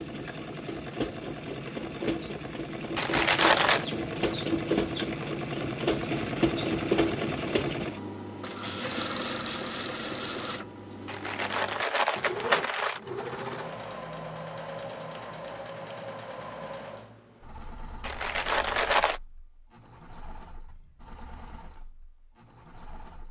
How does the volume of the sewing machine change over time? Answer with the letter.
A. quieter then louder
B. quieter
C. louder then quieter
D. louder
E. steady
B.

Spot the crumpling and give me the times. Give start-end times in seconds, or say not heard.
3.0-3.9, 11.1-13.0, 18.0-19.2.